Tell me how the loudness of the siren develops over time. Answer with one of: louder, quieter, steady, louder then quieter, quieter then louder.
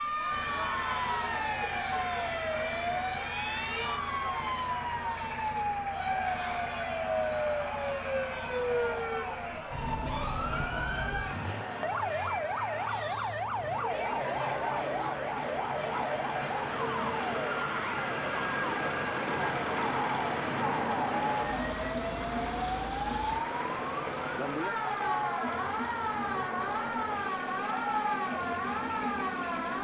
steady.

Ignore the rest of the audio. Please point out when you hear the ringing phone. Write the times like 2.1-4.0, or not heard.
17.9-19.5.